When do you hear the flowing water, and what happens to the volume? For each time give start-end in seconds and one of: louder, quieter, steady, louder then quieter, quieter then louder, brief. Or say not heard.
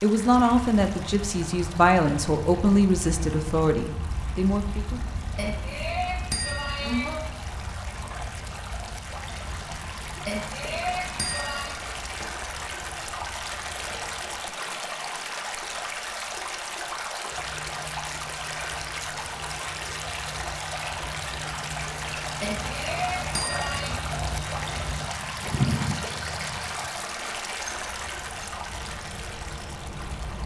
0.0-30.4 louder.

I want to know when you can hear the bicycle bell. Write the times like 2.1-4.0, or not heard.
5.3-7.2, 10.2-11.8, 22.4-23.9.